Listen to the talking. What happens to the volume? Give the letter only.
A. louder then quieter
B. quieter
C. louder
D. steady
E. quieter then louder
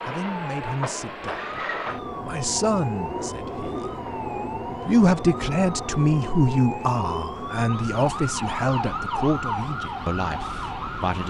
A.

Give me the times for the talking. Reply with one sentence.
You can hear the talking from 0.0 to 3.9 s and from 4.8 to 11.2 s.